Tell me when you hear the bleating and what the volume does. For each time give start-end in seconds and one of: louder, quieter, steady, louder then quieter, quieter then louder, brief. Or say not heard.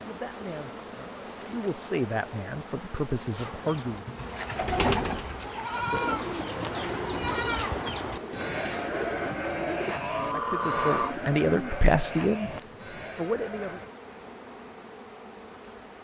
3.4-13.9 louder then quieter.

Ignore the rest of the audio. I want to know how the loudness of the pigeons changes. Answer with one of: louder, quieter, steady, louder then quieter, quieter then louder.
quieter then louder.